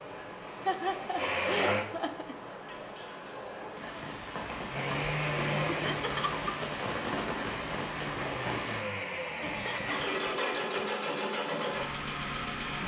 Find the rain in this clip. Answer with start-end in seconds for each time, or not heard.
0.0-8.8.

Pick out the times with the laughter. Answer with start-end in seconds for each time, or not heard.
0.5-2.5, 5.7-6.5, 9.4-10.7.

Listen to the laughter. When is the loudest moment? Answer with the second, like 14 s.
1 s.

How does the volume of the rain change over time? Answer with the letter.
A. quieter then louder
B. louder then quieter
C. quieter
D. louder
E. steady
D.